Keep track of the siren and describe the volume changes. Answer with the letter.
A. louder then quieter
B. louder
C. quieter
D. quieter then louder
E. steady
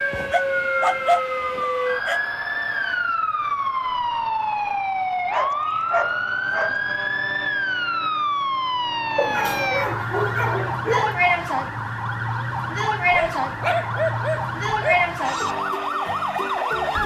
E.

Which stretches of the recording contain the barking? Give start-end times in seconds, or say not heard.
0.3-2.2, 5.3-6.8, 9.2-11.2, 13.1-15.1.